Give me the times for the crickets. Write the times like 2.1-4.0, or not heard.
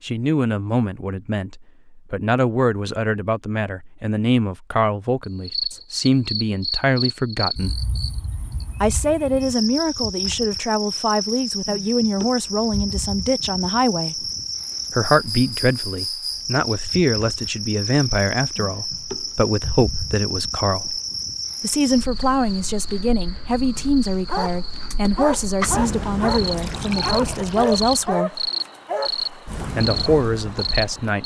5.2-31.2.